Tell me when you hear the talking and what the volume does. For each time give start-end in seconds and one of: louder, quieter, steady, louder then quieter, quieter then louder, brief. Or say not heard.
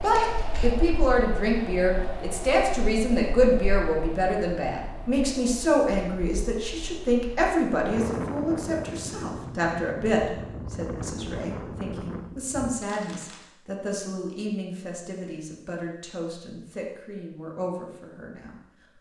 0.0-18.9 quieter.